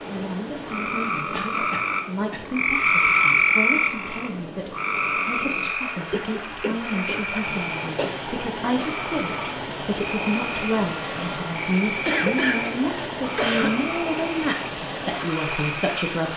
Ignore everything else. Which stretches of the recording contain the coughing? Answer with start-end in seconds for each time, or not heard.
1.3-2.5, 6.1-8.1, 12.1-13.8.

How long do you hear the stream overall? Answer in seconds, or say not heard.
16 s.